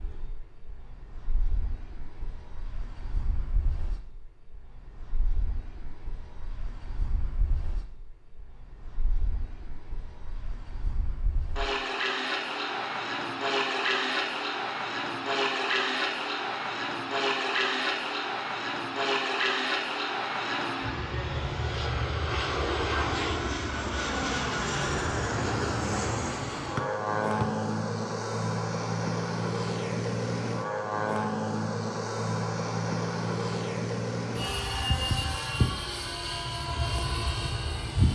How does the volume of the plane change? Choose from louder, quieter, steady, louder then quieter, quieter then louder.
louder.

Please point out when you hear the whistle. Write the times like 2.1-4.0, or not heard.
26.8-27.4.